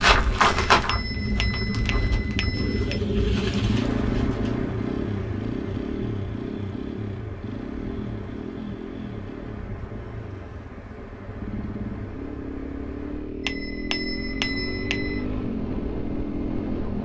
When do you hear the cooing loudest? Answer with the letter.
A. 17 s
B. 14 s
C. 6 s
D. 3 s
D.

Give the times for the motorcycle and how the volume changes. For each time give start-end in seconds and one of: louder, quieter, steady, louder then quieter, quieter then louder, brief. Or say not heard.
1.7-16.9 quieter then louder.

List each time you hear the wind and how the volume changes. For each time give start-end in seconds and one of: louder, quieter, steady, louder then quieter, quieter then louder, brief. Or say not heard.
0.0-13.3 quieter.